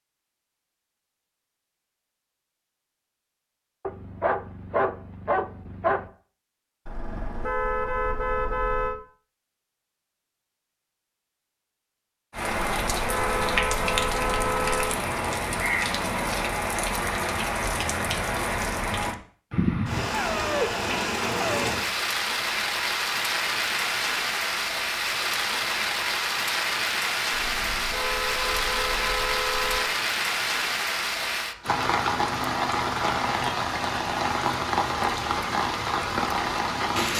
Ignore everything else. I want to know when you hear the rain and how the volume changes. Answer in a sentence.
You can hear the rain from 12.3 to 37.1 s, at a steady volume.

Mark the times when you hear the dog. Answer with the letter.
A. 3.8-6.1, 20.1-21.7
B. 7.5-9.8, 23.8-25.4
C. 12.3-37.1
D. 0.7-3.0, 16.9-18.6
A.